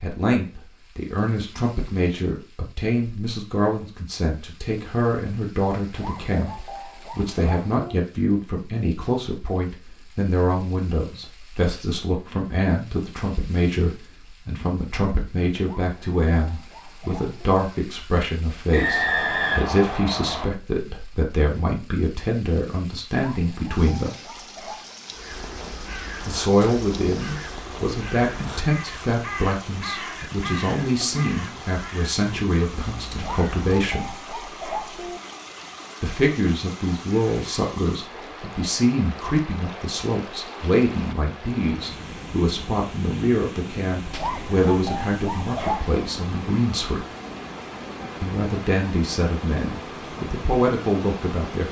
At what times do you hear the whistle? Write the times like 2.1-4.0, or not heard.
18.7-20.4.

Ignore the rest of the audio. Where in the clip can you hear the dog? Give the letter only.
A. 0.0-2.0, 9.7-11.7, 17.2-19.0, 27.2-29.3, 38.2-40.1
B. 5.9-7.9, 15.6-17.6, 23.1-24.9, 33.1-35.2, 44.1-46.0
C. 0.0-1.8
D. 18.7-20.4
B.